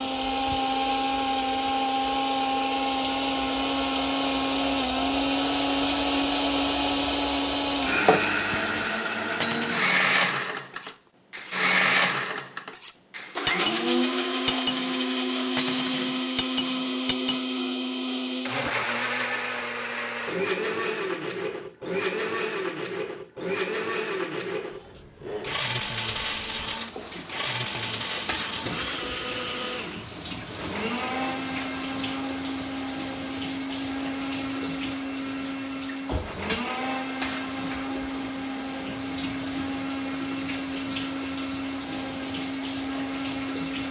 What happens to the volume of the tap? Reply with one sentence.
The volume of the tap stays about the same.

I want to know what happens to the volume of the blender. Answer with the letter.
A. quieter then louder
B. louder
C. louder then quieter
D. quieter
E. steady
D.